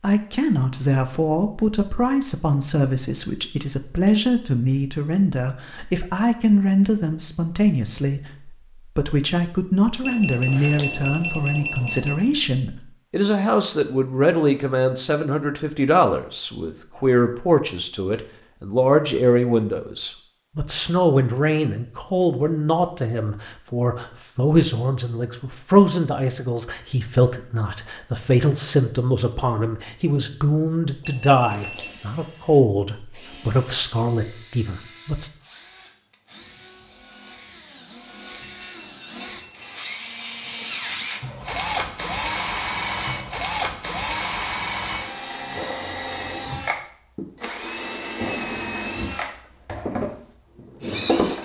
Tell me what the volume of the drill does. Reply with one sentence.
The volume of the drill goes up.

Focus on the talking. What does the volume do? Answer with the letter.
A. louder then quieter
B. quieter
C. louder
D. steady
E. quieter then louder
D.